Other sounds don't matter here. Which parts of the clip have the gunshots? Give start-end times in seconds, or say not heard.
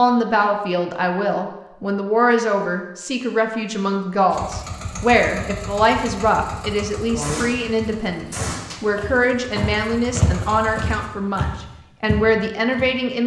7.2-8.8.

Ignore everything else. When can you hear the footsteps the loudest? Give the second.
10 s.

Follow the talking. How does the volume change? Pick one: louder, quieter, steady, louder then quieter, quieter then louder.
steady.